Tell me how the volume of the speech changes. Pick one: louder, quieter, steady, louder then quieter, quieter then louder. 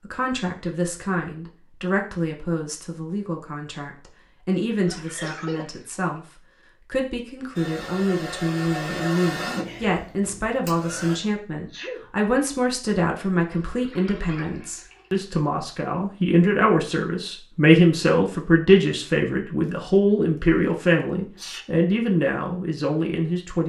louder.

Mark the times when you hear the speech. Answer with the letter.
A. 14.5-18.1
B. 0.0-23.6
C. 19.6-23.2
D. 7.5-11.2
B.